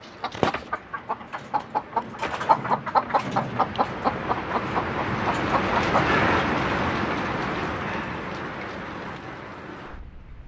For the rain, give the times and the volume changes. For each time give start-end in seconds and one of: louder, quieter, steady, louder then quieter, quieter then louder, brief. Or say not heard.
0.0-10.4 louder then quieter.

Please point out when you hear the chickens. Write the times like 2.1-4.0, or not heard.
0.0-6.0.